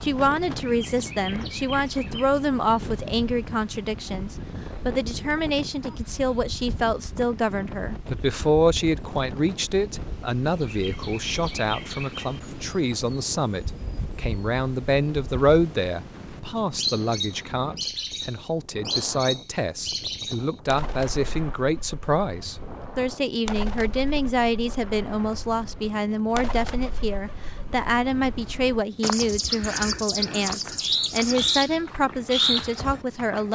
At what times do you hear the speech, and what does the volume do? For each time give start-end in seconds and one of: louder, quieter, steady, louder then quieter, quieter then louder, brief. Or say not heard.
0.0-33.5 steady.